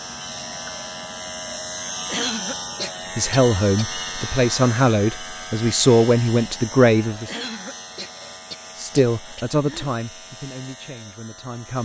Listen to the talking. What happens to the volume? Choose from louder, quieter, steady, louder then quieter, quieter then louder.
quieter.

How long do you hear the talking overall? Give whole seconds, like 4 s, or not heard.
7 s.